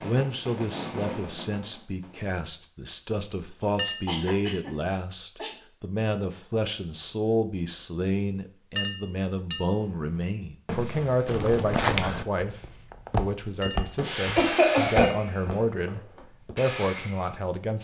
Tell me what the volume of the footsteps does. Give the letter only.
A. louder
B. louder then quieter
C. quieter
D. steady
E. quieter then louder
C.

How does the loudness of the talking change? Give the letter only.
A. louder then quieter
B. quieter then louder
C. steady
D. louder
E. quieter
C.